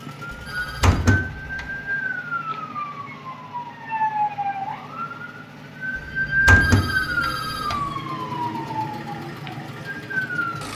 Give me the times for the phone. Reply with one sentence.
You can hear the phone from 0.4 to 0.9 s and from 6.5 to 7.9 s.